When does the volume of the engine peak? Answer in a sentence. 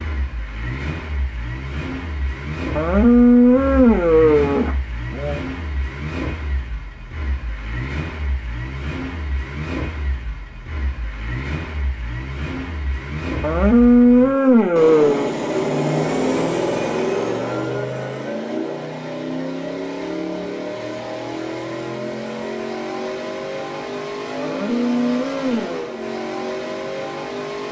The volume of the engine peaks at 16 seconds.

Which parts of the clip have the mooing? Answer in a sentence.
The mooing can be heard from 2.8 to 5.4 s, from 13.4 to 15.3 s and from 24.4 to 25.9 s.